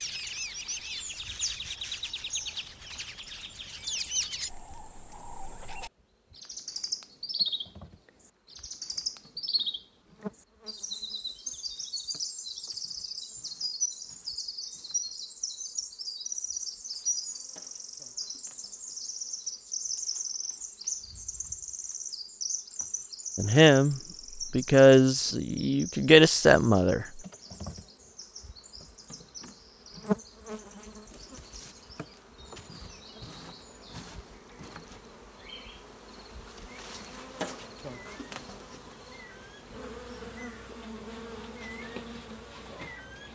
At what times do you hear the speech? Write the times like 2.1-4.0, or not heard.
23.4-27.1.